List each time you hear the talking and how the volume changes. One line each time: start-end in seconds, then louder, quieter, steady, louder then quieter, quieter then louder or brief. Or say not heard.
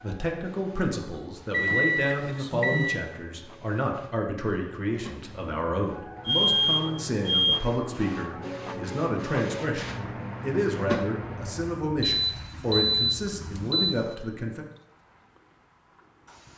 0.0-14.7 steady.